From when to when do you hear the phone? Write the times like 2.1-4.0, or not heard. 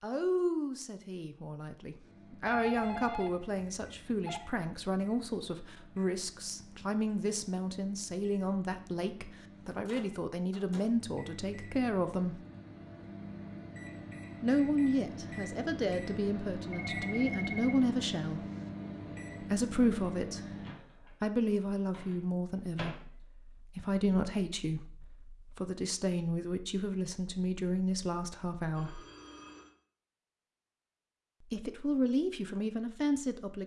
2.5-4.4, 16.7-17.8, 28.7-29.8.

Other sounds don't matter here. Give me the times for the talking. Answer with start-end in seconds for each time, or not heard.
0.0-12.4, 14.4-18.4, 19.4-20.4, 21.2-29.0, 31.4-33.6.